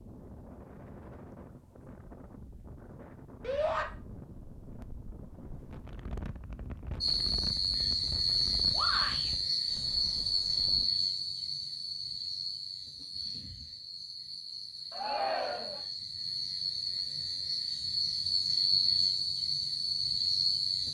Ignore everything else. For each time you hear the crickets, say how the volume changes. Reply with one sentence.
The crickets can be heard from 7.0 to 20.9 s, getting quieter then louder.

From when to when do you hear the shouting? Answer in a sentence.
You can hear the shouting from 3.4 to 3.9 s, from 8.7 to 9.3 s and from 14.9 to 15.8 s.